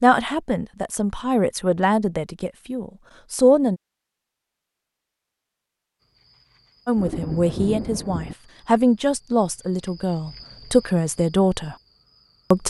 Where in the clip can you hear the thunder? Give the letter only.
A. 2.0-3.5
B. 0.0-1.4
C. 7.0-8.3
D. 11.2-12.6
C.